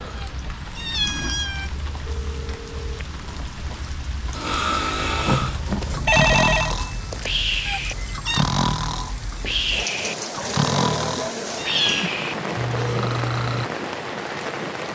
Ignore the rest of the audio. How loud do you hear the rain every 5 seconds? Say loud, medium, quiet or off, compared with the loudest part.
medium, loud, loud.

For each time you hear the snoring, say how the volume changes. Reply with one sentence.
The snoring can be heard from 4.3 to 13.7 s, at a steady volume.